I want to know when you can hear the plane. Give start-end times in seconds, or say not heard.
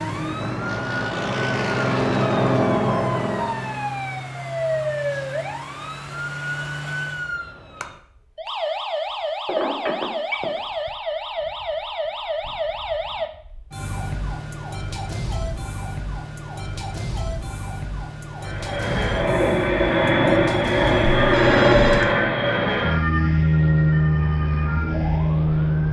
0.0-3.9, 18.4-25.8.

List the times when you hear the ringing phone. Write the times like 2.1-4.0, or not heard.
9.4-10.6, 21.0-22.1.